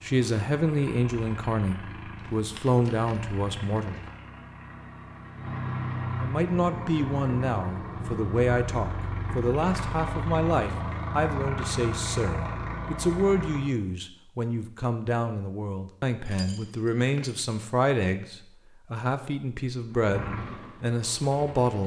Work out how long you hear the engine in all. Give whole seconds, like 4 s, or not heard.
16 s.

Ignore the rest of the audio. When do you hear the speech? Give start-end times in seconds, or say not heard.
0.0-4.0, 6.2-21.8.